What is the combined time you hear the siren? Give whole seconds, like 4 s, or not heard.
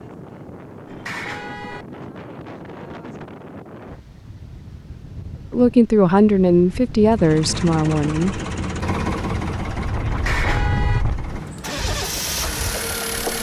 not heard.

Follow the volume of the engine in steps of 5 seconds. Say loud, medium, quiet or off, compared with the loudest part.
off, loud, loud.